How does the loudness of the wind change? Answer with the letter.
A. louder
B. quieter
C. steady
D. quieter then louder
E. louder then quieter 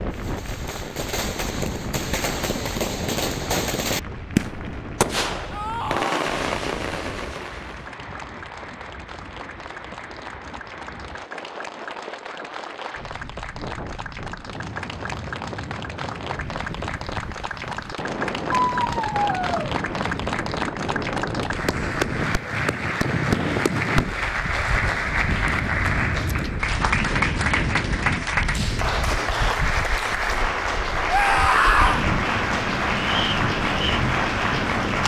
A.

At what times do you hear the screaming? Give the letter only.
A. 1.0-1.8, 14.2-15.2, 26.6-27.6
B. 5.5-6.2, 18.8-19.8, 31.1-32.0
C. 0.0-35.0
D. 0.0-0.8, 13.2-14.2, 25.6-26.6
B.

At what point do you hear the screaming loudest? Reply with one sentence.
The loudest moment of the screaming is at 32 seconds.